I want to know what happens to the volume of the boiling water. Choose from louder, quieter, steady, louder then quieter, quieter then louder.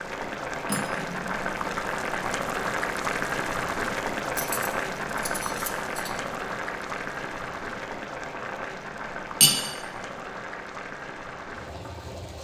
quieter.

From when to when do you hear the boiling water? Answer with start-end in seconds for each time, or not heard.
0.0-12.3.